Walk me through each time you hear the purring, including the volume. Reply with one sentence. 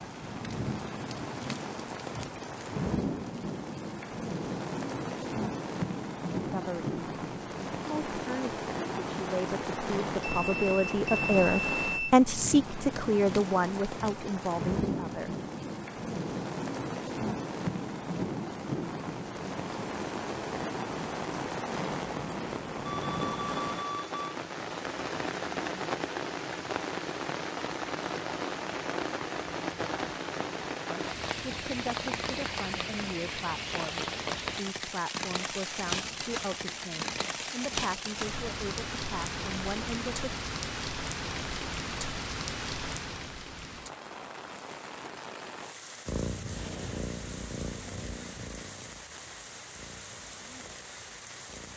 You can hear the purring from 46.0 to 51.7 s, getting quieter.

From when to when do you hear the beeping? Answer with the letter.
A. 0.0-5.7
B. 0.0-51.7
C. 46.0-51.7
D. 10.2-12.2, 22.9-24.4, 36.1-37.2
D.